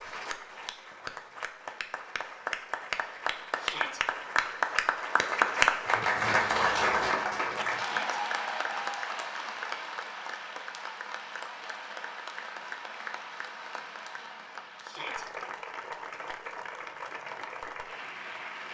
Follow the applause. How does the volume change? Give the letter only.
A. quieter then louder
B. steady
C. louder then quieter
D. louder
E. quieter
C.